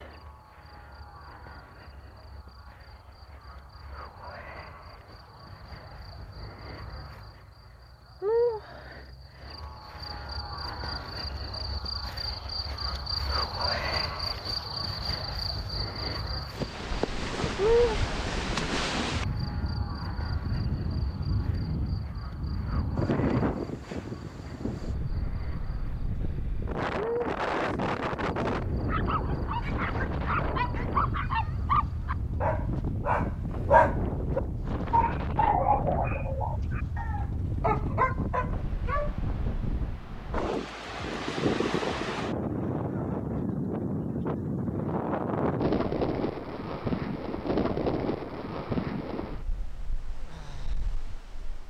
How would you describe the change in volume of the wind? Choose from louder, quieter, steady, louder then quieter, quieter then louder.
steady.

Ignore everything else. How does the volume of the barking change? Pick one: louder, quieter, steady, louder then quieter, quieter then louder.
louder then quieter.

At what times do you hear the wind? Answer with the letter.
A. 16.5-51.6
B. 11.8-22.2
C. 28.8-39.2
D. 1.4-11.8
A.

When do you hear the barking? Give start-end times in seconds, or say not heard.
28.8-39.2.